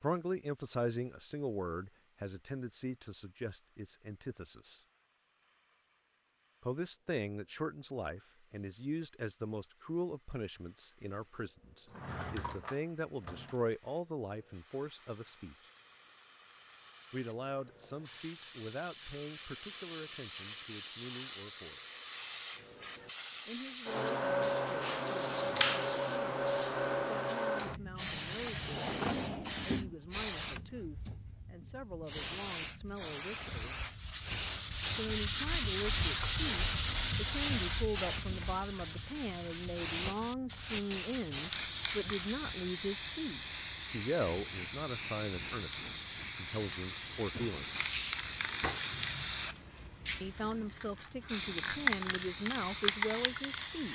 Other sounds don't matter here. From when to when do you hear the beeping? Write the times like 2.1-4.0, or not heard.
not heard.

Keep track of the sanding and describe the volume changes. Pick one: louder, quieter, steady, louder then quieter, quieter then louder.
quieter.